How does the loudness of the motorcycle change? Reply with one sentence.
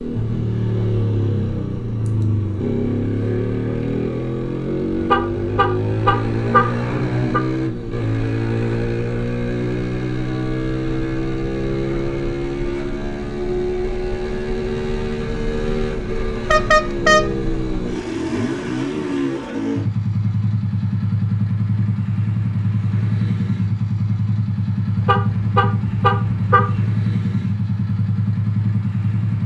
The volume of the motorcycle stays about the same.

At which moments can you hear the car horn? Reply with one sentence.
You can hear the car horn from 5.0 to 7.4 s, from 16.3 to 17.2 s and from 24.9 to 26.8 s.